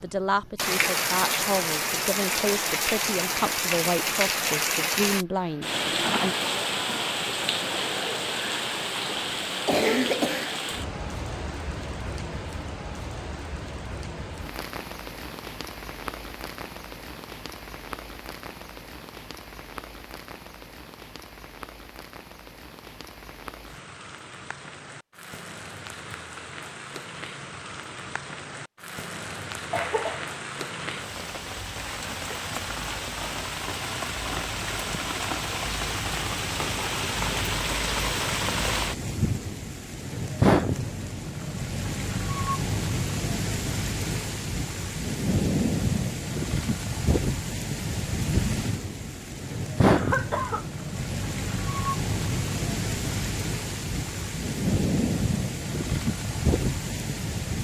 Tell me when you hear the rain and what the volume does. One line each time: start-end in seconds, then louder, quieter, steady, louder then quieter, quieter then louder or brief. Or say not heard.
0.0-57.6 quieter then louder.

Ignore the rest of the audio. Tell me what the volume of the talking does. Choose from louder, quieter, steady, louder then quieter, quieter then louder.
steady.